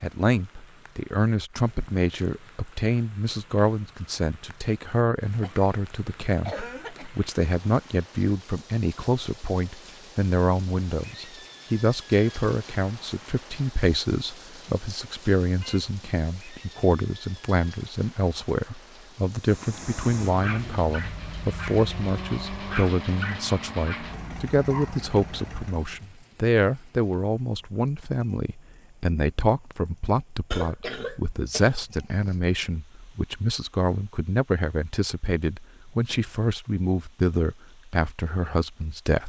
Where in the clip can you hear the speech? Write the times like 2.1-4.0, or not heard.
0.0-39.2.